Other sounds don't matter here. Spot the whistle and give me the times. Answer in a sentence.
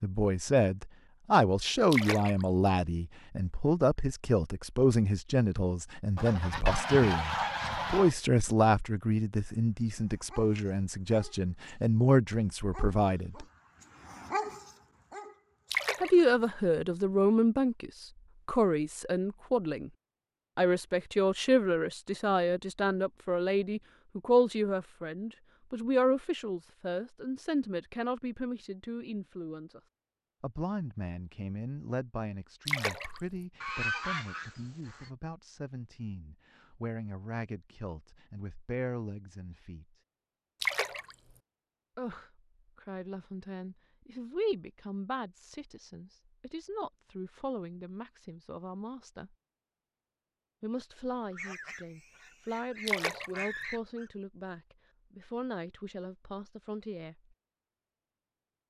You can't hear the whistle here.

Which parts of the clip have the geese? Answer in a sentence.
You can hear the geese from 6.2 to 8.2 s, from 33.6 to 35.1 s and from 51.3 to 54.1 s.